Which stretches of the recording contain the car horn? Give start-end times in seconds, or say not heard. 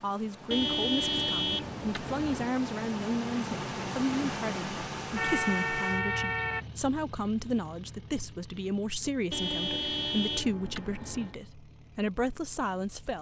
0.5-2.5, 5.2-6.7, 9.3-11.3.